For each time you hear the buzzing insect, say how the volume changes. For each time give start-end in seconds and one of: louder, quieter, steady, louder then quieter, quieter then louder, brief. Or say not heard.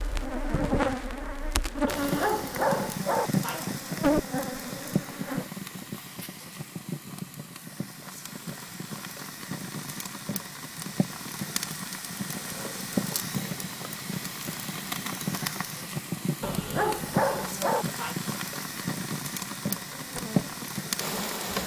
0.0-5.5 quieter then louder
19.9-21.6 brief.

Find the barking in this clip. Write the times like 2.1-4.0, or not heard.
1.9-3.6, 16.4-18.1.